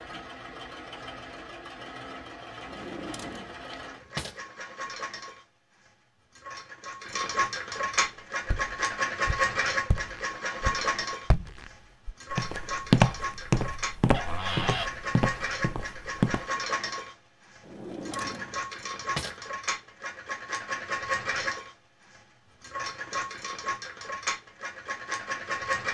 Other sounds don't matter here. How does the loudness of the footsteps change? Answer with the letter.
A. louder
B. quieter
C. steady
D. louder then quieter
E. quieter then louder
D.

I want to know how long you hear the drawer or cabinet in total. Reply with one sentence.
You can hear the drawer or cabinet for 4 seconds altogether.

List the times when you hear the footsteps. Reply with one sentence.
You can hear the footsteps from 8.4 to 16.4 s.